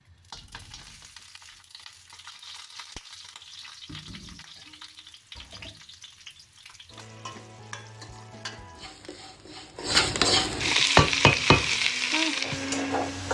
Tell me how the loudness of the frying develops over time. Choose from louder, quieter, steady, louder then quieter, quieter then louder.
louder.